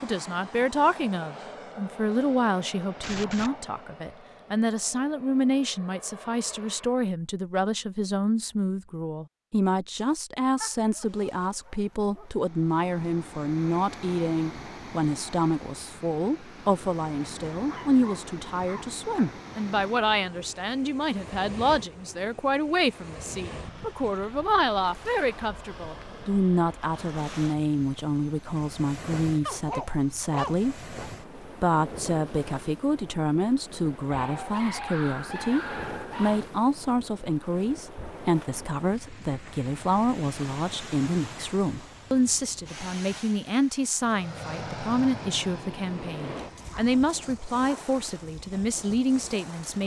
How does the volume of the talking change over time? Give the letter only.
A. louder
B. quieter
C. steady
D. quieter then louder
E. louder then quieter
C.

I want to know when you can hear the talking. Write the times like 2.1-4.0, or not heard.
0.0-49.8.